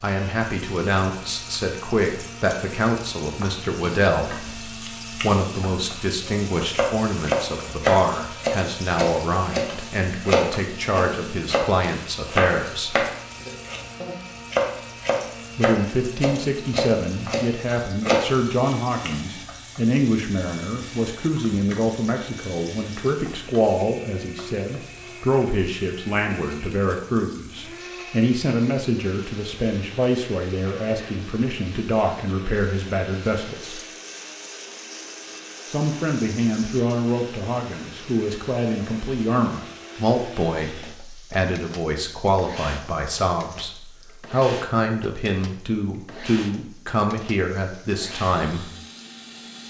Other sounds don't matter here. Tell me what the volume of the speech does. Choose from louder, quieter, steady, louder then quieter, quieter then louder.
steady.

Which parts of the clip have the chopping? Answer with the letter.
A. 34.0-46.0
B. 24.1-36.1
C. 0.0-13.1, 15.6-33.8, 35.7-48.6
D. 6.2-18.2
D.